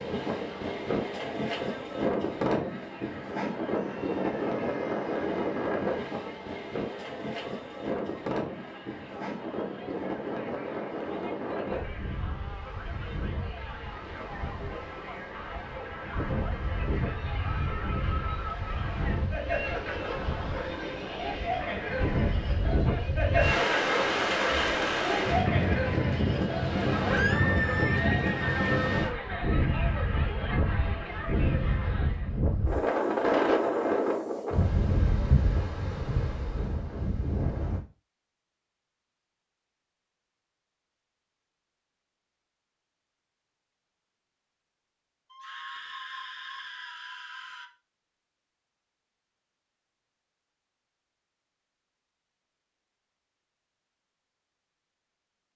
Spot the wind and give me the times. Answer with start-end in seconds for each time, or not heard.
0.0-37.8.